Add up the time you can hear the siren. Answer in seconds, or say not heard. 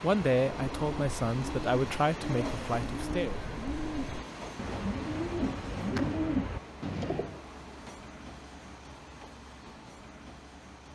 not heard.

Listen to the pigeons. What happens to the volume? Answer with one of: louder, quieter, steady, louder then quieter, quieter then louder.
louder.